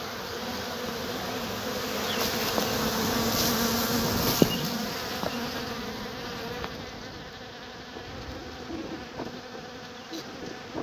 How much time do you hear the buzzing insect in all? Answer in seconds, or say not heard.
11 s.